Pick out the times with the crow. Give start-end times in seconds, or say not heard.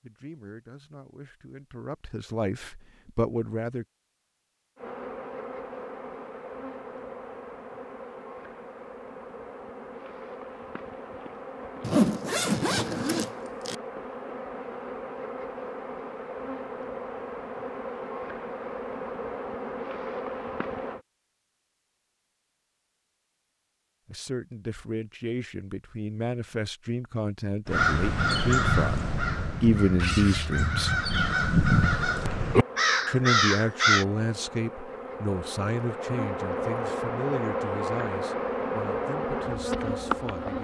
27.6-34.0.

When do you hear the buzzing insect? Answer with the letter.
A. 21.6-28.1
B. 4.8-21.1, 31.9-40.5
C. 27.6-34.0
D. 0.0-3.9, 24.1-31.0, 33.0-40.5
B.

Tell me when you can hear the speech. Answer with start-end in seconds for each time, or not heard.
0.0-3.9, 24.1-31.0, 33.0-40.5.